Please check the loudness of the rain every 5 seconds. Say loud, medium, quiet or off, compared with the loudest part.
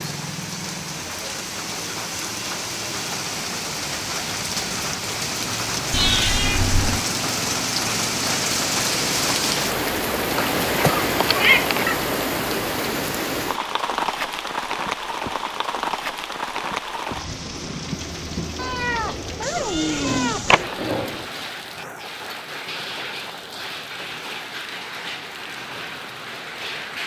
medium, loud, loud, medium, medium, medium.